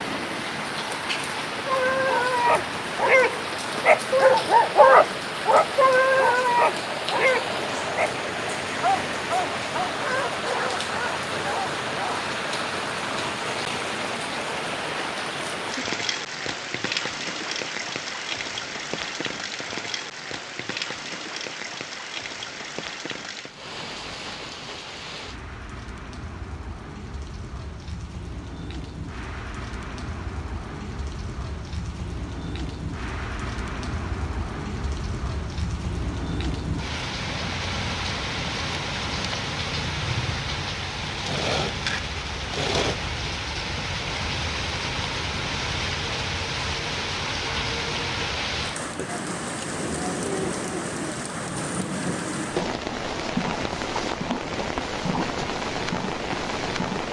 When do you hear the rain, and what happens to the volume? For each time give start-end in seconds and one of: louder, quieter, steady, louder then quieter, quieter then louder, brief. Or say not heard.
0.0-57.0 quieter then louder.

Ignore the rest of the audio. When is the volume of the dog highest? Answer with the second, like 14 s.
5 s.